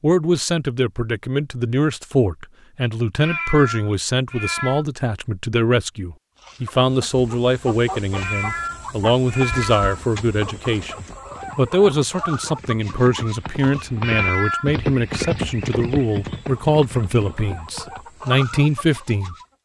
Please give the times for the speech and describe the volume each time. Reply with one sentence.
You can hear the speech from 0.0 to 19.4 s, at a steady volume.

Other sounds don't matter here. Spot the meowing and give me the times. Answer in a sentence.
You can hear the meowing from 3.2 to 4.8 s, from 8.2 to 10.1 s and from 14.0 to 15.3 s.